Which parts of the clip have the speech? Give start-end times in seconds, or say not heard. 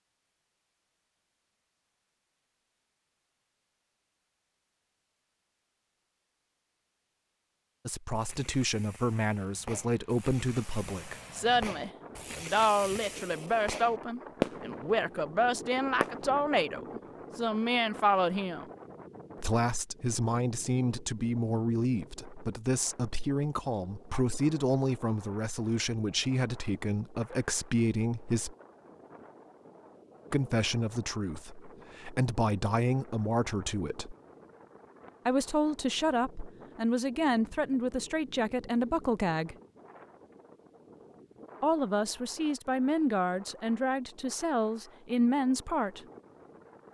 7.8-18.6, 19.4-28.6, 30.3-34.1, 35.2-39.5, 41.6-46.0.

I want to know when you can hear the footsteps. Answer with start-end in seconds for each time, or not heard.
not heard.